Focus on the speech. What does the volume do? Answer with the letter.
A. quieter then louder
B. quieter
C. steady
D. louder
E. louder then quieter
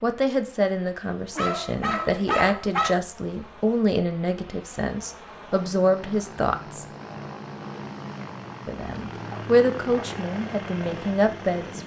C.